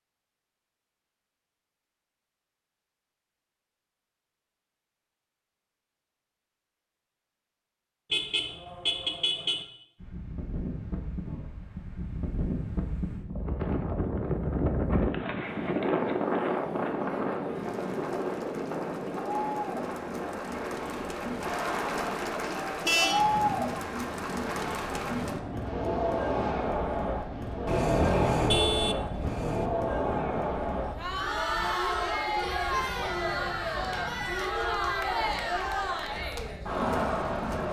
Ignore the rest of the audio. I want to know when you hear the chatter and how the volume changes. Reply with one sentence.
The chatter can be heard from 15.7 to 37.6 s, getting louder.